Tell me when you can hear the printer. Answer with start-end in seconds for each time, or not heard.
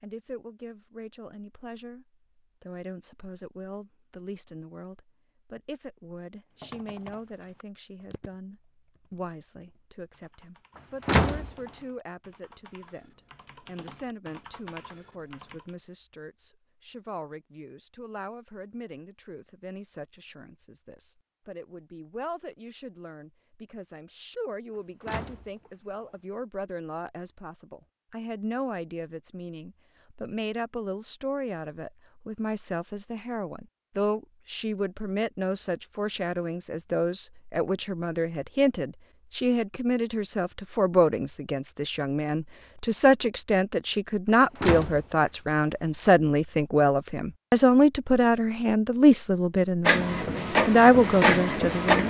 49.9-52.0.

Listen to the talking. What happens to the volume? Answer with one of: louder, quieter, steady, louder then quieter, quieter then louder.
louder.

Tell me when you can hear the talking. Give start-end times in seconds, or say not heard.
0.0-52.0.